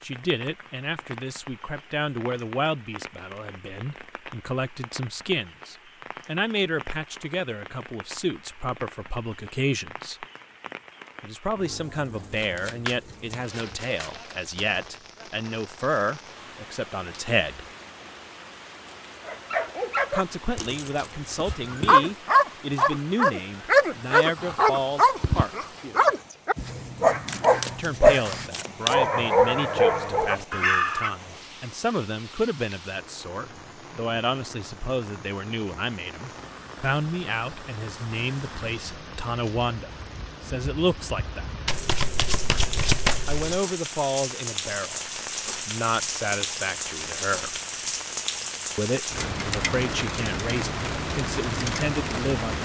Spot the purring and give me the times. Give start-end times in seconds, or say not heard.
not heard.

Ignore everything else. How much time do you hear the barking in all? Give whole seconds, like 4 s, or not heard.
12 s.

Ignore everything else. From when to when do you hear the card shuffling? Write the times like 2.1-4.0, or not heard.
12.3-14.7, 27.2-28.9, 41.6-43.6.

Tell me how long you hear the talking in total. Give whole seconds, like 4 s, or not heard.
44 s.